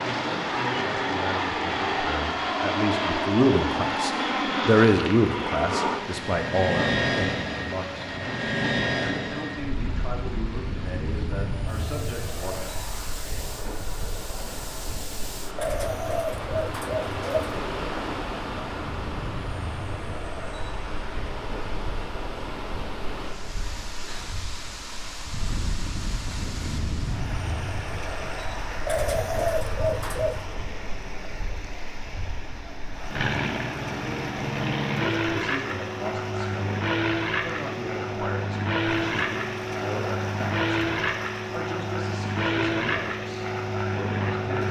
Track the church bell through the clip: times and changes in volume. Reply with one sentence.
The church bell can't be heard in this clip.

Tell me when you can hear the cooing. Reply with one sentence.
The cooing can be heard from 15.6 to 17.6 s and from 28.9 to 30.6 s.